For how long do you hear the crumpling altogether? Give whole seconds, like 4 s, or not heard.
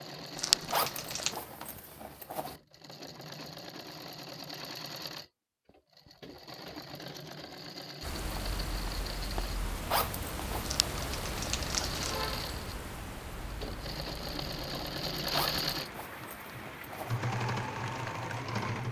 3 s.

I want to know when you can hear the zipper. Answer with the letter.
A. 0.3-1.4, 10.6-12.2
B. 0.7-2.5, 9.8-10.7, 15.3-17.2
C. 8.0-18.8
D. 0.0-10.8
B.